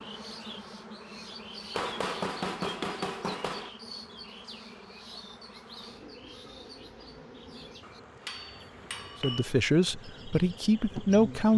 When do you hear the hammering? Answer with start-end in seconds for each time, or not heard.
1.7-3.7, 7.8-9.5.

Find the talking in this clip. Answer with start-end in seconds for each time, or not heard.
9.2-11.5.